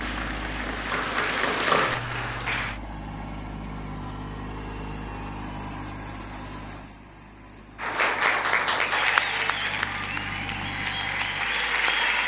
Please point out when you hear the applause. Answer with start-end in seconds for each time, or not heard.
0.0-2.8, 7.8-12.2.